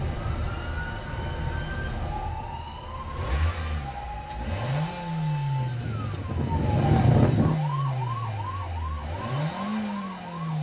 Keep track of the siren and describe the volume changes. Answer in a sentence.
The volume of the siren goes up, then down.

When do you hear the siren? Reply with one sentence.
The siren can be heard from 0.0 to 10.5 s.